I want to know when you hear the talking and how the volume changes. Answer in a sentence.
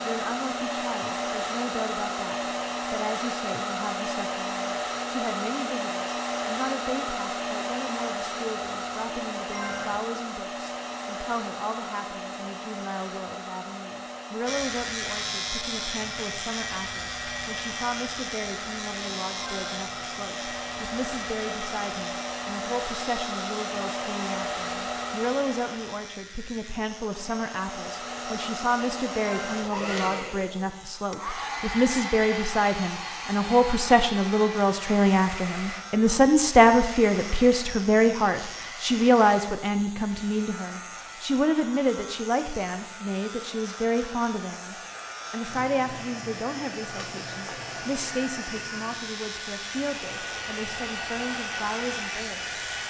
The talking can be heard from 0.0 to 52.6 s, getting louder then quieter.